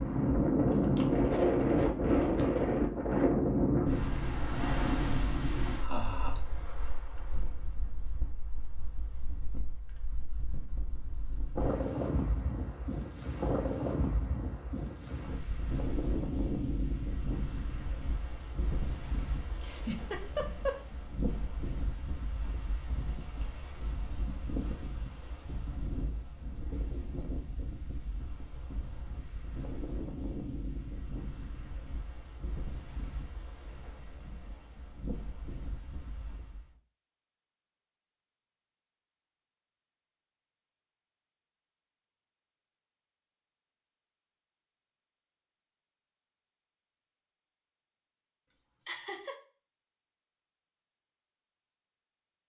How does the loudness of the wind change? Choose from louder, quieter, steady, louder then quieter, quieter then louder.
quieter.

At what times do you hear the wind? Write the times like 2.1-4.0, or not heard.
0.0-36.8.